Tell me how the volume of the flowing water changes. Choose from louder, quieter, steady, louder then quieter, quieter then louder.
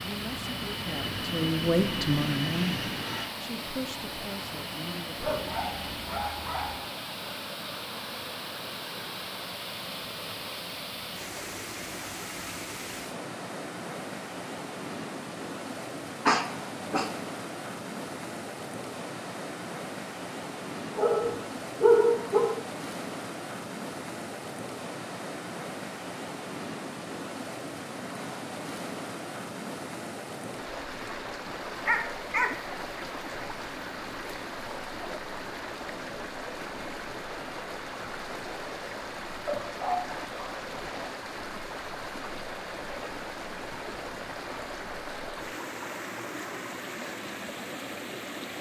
steady.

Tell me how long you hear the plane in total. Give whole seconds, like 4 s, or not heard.
6 s.